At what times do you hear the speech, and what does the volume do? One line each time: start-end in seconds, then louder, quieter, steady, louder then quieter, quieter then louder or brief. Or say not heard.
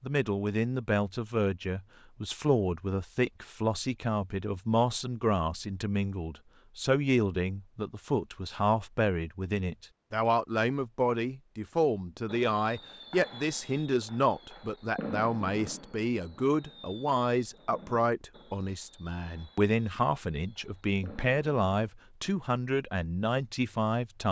0.0-24.2 steady.